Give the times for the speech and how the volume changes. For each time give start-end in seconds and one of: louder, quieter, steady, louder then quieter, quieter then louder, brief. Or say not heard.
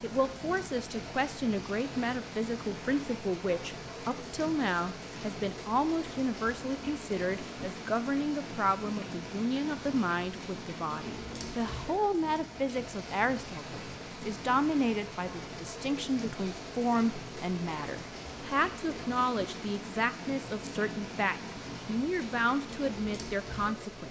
0.0-24.0 steady.